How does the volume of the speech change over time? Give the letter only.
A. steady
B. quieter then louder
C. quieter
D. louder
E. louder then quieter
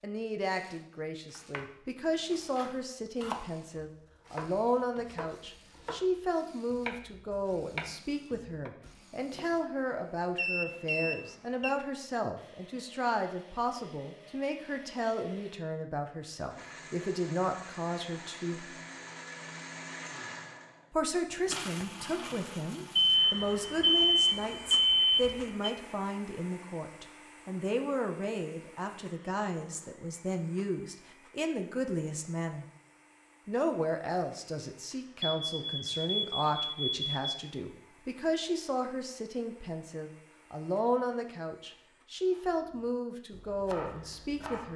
A.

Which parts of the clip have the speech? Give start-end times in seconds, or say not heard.
0.0-18.7, 20.9-32.6, 33.5-44.7.